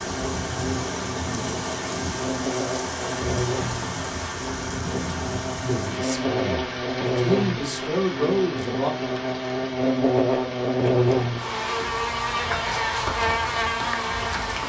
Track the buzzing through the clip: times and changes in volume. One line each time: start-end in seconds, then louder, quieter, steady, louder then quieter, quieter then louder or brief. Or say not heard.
0.0-14.6 louder.